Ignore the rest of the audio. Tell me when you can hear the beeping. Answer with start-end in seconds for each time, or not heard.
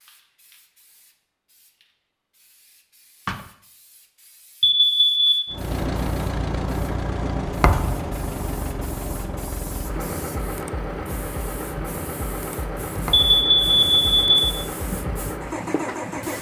4.6-5.3, 13.1-14.4.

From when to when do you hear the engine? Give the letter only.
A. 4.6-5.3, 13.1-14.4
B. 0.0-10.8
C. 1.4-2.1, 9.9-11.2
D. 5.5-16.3
D.